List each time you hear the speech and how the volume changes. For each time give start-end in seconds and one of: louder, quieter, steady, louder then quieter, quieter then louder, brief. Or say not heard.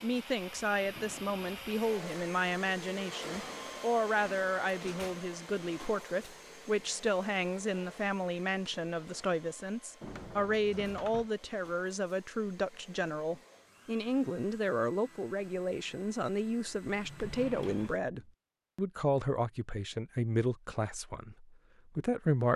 0.0-22.5 steady.